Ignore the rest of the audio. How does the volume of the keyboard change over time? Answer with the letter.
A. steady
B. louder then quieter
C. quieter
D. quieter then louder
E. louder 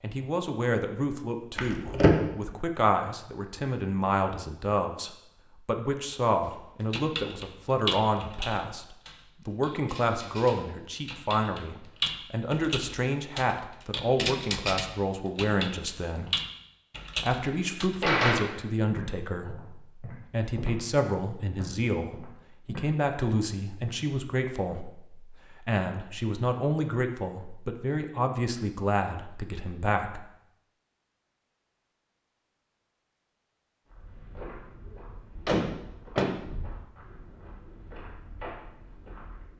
D.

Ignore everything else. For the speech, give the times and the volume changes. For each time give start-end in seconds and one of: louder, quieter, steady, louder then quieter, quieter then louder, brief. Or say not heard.
0.0-16.4 steady
17.2-30.2 steady.